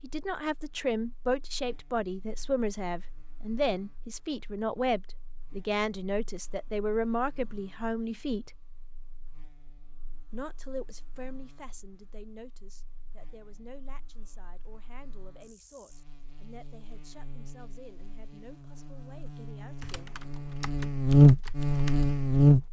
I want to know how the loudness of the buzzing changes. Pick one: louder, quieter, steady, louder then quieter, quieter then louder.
louder.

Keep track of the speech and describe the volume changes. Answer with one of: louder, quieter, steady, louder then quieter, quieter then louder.
quieter.